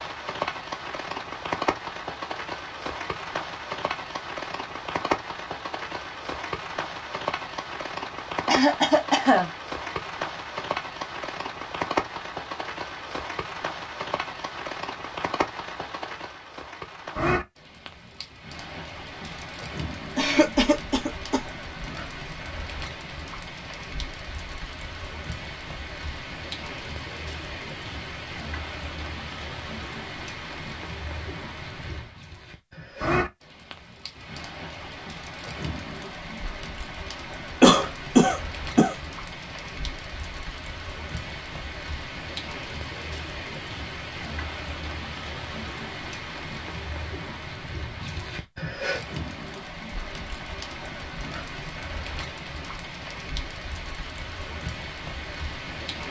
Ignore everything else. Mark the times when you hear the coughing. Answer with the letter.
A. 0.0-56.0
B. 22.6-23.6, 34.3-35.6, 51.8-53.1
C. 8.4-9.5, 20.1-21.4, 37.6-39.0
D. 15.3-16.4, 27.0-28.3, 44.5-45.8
C.